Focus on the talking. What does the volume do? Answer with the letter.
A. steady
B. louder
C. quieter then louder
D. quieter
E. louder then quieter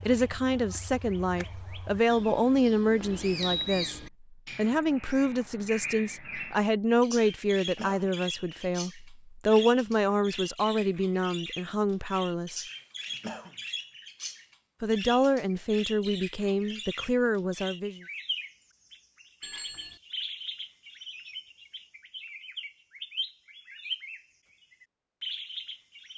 A.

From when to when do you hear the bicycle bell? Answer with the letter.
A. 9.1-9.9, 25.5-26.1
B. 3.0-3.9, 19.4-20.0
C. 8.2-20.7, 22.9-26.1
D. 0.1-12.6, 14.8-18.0
B.